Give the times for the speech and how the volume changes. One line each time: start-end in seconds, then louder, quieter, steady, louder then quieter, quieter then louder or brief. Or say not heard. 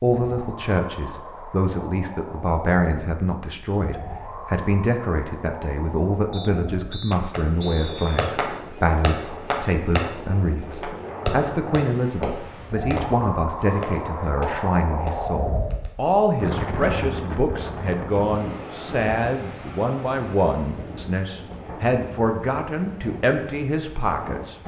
0.0-24.6 steady.